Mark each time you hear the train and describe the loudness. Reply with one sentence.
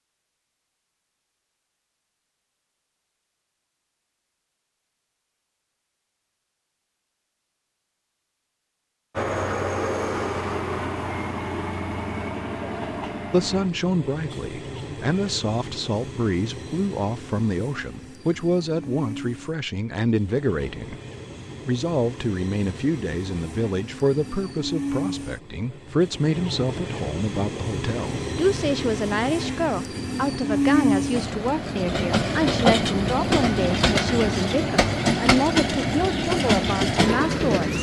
You can hear the train from 9.2 to 37.7 s, getting quieter then louder.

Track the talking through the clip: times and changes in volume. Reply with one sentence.
The talking can be heard from 13.3 to 20.9 s, at a steady volume; and from 21.6 to 37.7 s, at a steady volume.